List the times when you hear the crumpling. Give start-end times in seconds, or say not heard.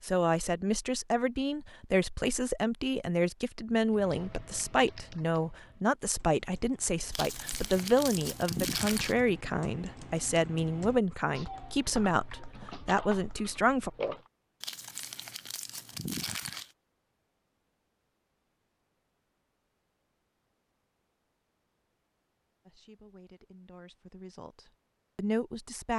7.1-9.2, 14.6-16.7.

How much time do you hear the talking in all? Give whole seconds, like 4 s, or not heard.
17 s.